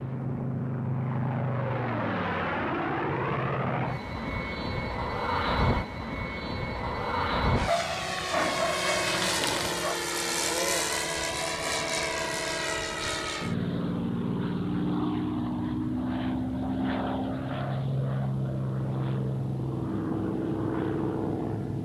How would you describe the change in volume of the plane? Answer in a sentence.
The loudness of the plane stays about the same.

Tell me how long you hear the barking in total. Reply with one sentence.
The barking can be heard for 2 seconds in total.